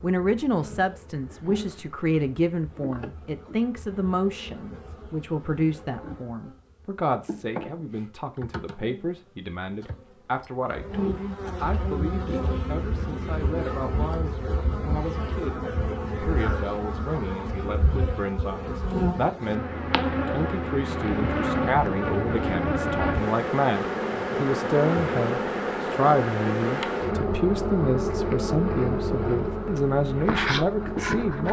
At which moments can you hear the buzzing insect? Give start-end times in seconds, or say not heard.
0.0-31.4.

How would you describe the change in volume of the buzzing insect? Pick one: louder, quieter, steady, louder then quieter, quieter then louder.
louder.